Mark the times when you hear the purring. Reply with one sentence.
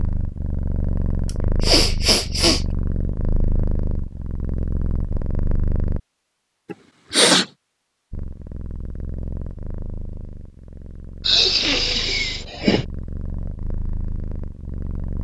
You can hear the purring from 0.0 to 6.0 s and from 8.1 to 15.1 s.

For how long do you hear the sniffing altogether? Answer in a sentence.
The sniffing can be heard for 4 seconds in total.